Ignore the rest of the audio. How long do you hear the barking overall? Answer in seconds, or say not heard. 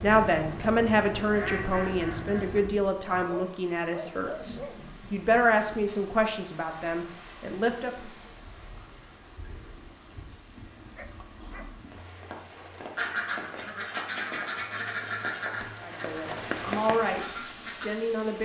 3 s.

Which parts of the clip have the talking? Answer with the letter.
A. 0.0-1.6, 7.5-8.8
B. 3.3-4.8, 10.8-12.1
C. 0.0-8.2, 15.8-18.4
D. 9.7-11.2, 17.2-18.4
C.